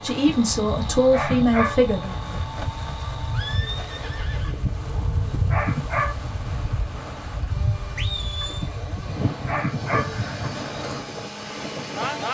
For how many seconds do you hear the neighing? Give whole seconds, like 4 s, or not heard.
3 s.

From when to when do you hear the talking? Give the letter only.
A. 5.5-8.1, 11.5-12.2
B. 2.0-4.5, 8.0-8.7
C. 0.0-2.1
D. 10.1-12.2
C.